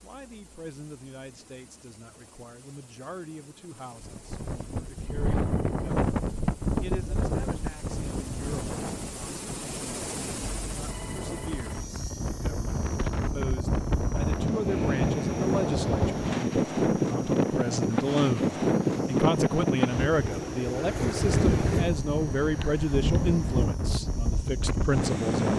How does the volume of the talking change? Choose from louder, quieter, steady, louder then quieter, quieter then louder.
louder.